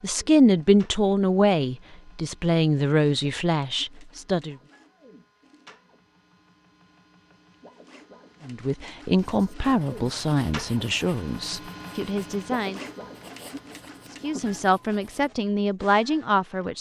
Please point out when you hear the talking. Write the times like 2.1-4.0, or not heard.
0.0-4.5, 8.4-12.8, 14.2-16.7.